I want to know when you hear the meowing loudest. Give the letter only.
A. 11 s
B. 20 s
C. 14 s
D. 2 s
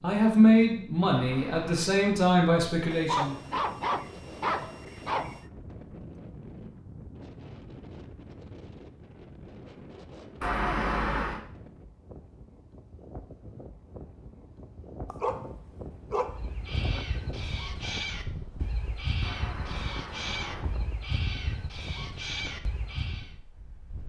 A.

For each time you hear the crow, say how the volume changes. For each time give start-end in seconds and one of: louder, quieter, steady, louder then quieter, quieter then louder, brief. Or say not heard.
16.2-23.4 steady.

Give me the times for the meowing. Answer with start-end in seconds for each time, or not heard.
1.1-1.9, 10.4-11.4, 19.2-20.7.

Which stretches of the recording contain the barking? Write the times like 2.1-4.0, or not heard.
2.9-5.4, 15.1-17.1.